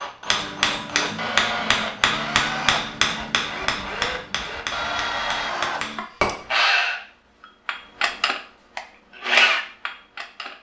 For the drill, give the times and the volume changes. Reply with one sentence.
The drill can be heard from 0.0 to 10.5 s, getting louder.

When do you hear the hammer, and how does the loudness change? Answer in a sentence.
You can hear the hammer from 0.2 to 6.4 s, getting quieter.